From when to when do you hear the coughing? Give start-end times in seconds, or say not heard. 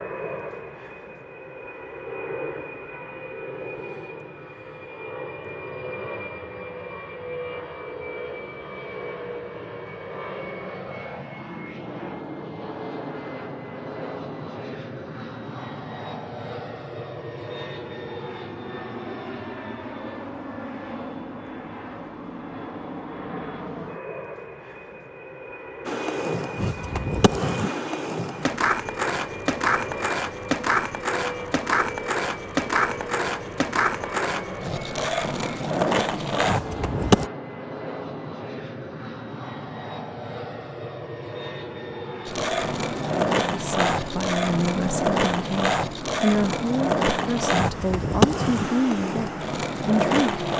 not heard.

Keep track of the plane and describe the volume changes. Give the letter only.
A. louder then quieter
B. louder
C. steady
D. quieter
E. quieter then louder
C.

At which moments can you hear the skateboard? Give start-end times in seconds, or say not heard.
25.9-37.3, 42.2-50.5.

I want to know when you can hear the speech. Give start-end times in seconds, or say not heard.
43.4-50.2.